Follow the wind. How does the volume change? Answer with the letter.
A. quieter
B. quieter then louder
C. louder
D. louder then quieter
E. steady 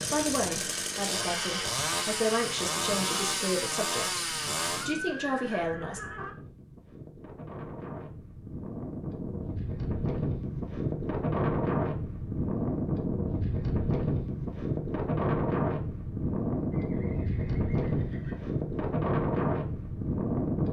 C.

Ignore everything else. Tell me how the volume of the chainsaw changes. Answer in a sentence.
The volume of the chainsaw stays about the same.